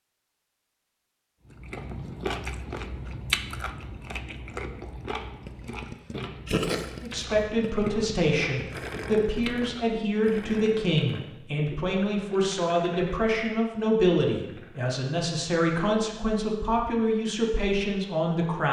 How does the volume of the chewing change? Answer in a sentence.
The loudness of the chewing goes down.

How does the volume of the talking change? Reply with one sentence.
The loudness of the talking stays about the same.